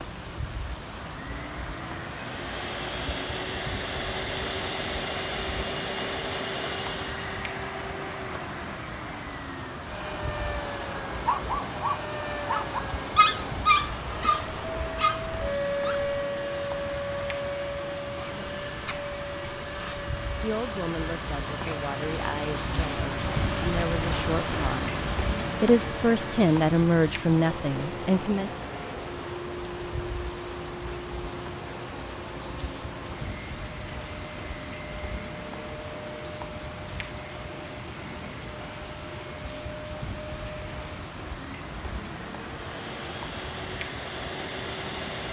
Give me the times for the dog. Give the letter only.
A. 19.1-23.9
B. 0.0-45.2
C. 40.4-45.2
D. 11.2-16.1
D.